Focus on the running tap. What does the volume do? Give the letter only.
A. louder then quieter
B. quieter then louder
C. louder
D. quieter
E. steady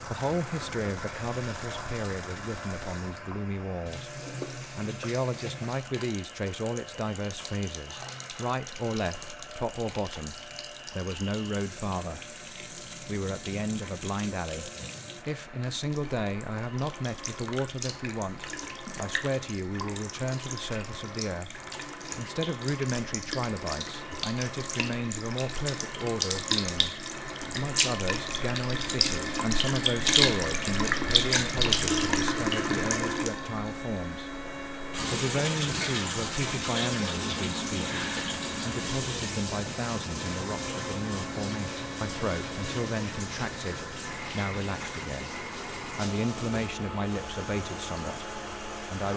A.